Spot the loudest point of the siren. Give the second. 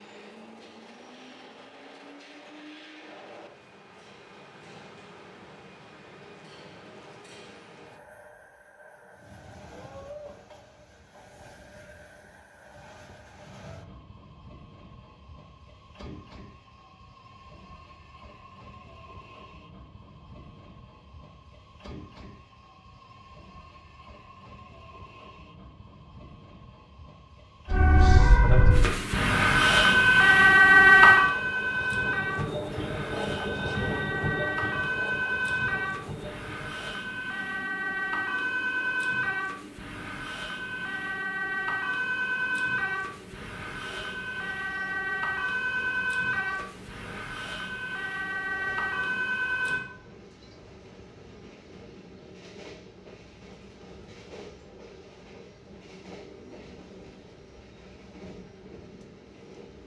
31 s.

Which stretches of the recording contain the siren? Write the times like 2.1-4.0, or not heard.
27.7-49.9.